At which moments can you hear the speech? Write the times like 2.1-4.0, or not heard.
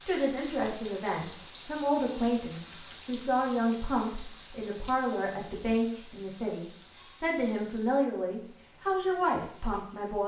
0.1-10.2.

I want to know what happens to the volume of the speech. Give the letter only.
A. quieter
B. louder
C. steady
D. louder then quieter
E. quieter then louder
C.